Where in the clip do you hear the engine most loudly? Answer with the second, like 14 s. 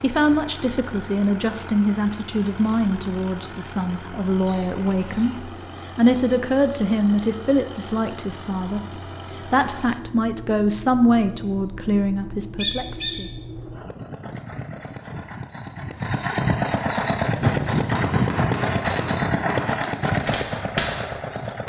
18 s.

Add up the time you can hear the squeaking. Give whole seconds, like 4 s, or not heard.
2 s.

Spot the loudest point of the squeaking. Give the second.
13 s.